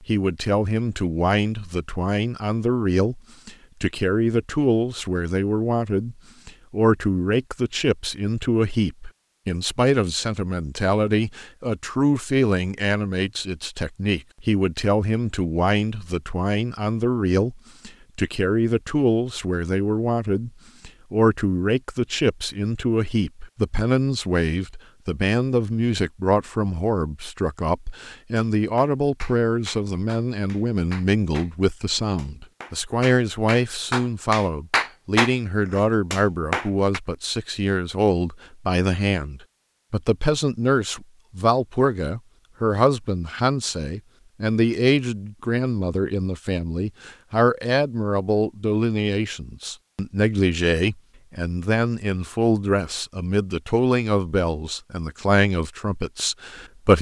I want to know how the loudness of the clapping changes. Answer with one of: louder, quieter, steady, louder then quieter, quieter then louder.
louder.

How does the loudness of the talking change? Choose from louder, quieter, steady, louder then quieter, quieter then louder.
steady.